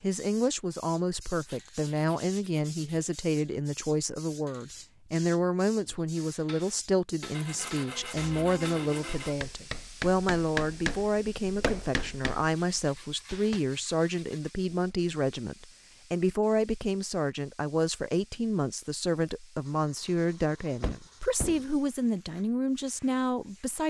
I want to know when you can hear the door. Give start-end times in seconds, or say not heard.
20.8-21.6.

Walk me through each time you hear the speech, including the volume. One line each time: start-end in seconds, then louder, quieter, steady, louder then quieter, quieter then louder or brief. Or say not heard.
0.0-23.8 steady.